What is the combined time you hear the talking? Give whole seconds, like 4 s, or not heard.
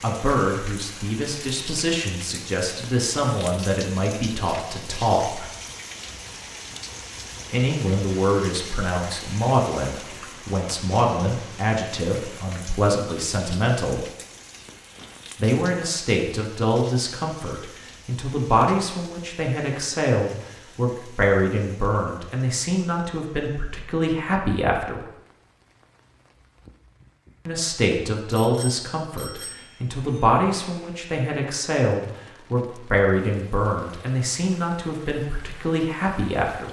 31 s.